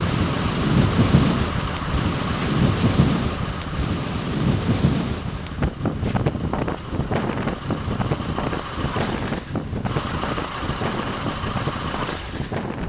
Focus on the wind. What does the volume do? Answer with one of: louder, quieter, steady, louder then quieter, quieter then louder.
quieter.